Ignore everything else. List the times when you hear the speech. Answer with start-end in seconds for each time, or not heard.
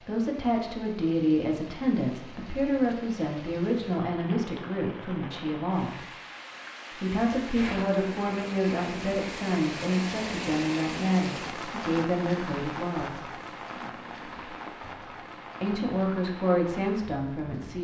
0.0-6.0, 6.9-13.2, 15.6-17.7.